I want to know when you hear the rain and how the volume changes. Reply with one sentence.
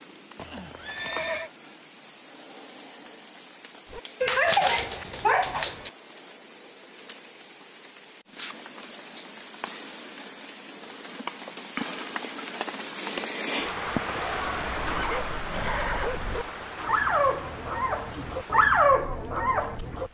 You can hear the rain from 0.0 to 20.0 s, getting louder then quieter.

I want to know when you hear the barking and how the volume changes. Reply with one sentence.
The barking can be heard briefly from 3.9 to 5.9 s; and from 14.6 to 20.0 s, getting louder.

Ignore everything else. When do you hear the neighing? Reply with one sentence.
The neighing can be heard from 0.3 to 1.5 s and from 14.9 to 16.2 s.